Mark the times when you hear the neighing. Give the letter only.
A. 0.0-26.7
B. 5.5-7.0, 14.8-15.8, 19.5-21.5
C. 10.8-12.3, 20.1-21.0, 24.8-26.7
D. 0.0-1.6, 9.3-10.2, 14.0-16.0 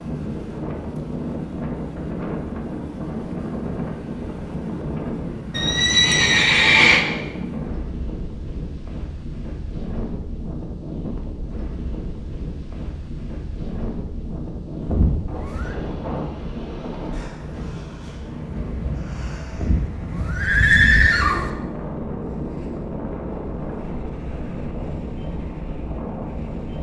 B.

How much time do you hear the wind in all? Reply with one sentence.
The wind can be heard for 27 seconds in total.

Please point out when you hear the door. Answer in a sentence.
You can't hear the door here.